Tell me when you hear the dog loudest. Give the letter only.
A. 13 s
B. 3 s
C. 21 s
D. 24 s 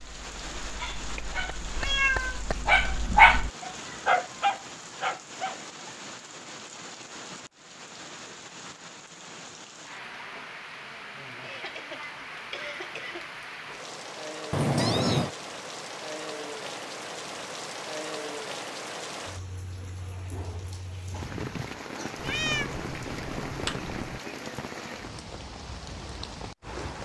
B.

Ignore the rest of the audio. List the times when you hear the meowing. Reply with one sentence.
You can hear the meowing from 1.8 to 2.4 s, from 14.5 to 15.3 s and from 22.1 to 24.2 s.